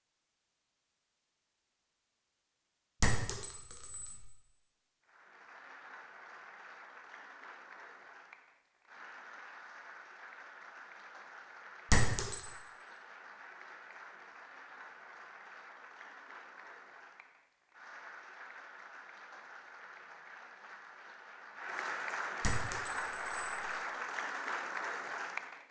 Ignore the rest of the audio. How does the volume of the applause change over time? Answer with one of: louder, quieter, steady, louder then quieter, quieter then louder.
louder.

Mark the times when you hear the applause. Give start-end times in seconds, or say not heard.
5.0-25.6.